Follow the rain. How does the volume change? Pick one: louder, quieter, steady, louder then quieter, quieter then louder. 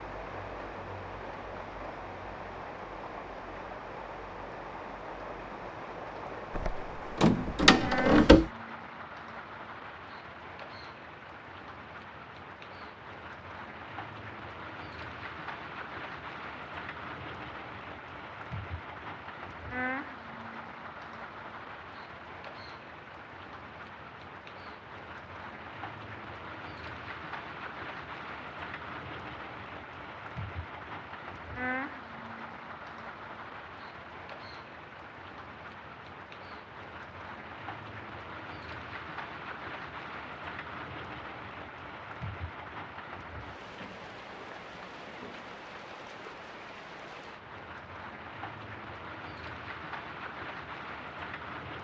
steady.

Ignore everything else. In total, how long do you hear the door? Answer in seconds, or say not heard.
2 s.